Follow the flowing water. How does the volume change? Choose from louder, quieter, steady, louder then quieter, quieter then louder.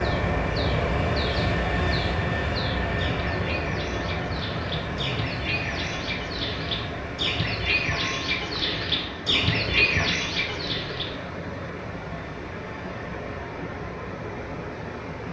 steady.